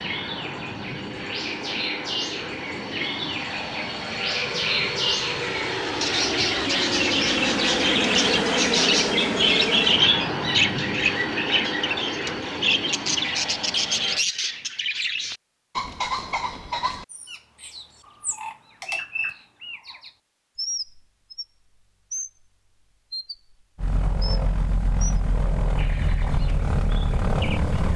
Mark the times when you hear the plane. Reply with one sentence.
The plane can be heard from 0.0 to 14.2 s and from 23.8 to 27.9 s.